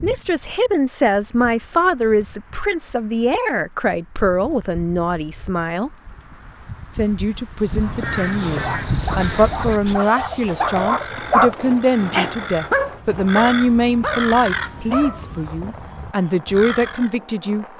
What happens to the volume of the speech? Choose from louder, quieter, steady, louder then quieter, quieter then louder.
steady.